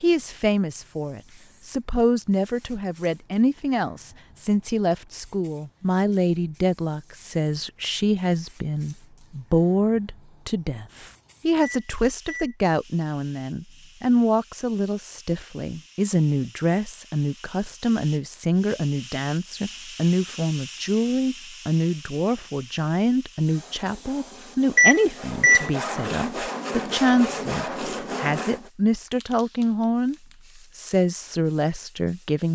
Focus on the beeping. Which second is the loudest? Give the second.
25 s.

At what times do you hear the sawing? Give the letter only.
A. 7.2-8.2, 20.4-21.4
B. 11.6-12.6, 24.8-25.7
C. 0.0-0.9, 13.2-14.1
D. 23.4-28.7
D.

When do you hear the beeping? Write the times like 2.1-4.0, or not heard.
11.6-12.6, 24.8-25.7.